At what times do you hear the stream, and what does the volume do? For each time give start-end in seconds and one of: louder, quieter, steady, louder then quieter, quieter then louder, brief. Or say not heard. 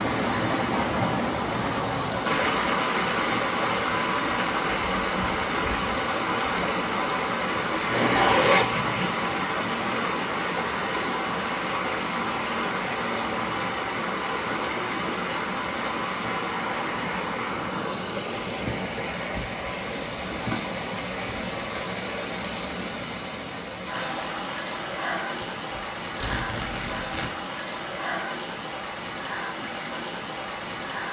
0.0-31.0 quieter.